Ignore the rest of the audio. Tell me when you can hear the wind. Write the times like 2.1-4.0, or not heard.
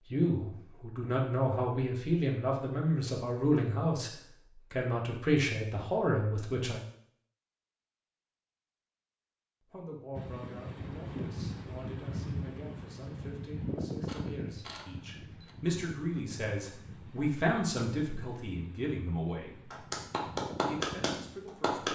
10.2-21.9.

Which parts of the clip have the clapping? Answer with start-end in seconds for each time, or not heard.
19.7-21.9.